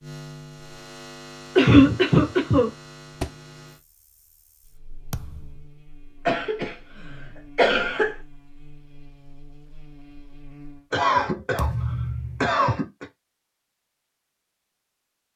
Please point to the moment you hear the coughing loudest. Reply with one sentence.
The volume of the coughing peaks at 2 seconds.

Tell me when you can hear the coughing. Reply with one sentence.
You can hear the coughing from 1.6 to 2.7 s, from 6.2 to 6.8 s, from 7.5 to 8.2 s and from 10.9 to 13.1 s.